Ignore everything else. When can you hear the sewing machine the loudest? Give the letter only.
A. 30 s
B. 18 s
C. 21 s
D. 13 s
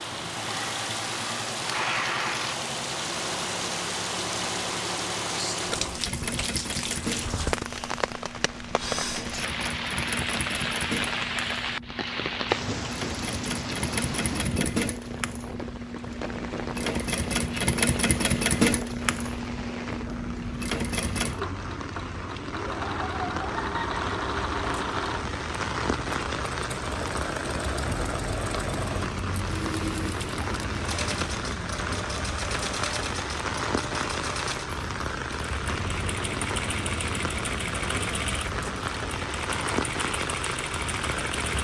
B.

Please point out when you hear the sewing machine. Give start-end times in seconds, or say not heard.
0.0-41.5.